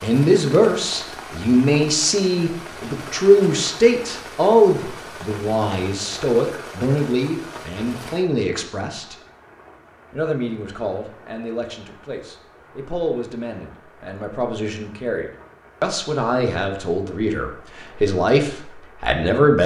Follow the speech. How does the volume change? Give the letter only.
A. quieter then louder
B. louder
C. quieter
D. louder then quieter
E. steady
A.